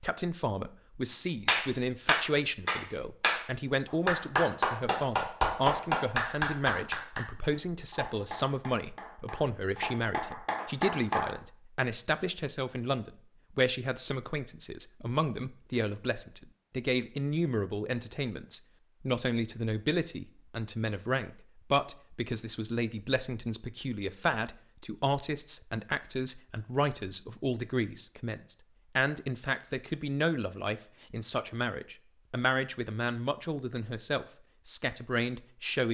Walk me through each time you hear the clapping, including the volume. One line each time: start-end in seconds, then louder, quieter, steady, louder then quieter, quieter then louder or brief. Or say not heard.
1.4-3.5 brief
4.0-11.3 quieter then louder.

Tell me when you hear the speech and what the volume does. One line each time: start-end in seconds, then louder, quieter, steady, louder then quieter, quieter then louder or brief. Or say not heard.
0.0-35.9 steady.